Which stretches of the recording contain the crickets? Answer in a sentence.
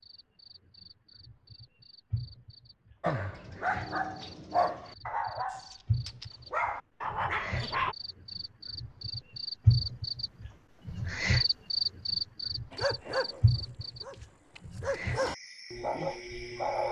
You can hear the crickets from 0.0 to 16.8 s.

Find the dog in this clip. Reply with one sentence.
You can hear the dog from 3.0 to 8.0 s and from 12.7 to 16.8 s.